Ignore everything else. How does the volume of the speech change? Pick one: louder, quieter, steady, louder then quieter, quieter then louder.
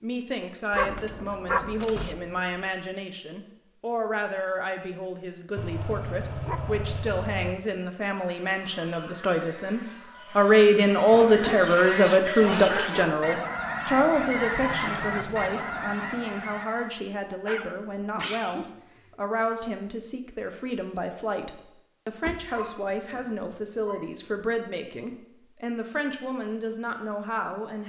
louder then quieter.